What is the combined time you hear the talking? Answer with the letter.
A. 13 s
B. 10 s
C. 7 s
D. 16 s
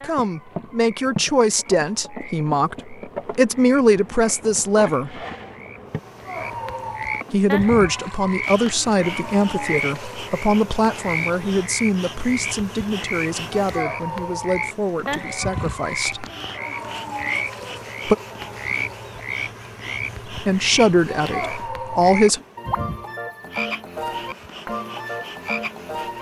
D.